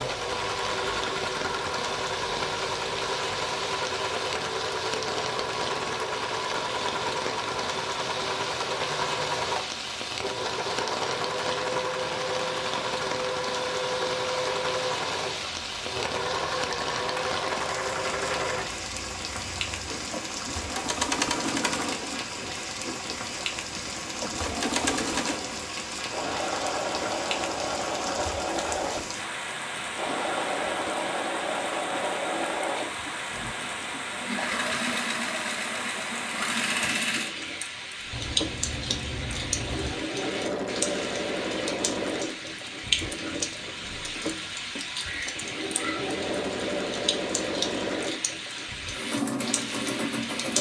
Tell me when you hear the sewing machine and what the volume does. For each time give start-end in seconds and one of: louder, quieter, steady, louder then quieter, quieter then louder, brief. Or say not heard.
0.0-50.5 steady.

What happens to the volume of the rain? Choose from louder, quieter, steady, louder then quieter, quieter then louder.
steady.